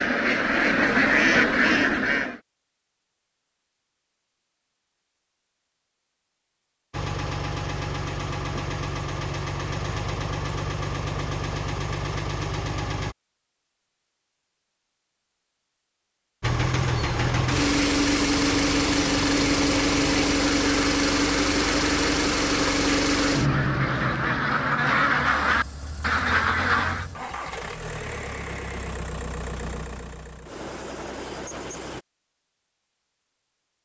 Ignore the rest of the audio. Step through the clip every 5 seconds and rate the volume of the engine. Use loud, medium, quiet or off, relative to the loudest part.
off, medium, medium, loud, loud, quiet, quiet.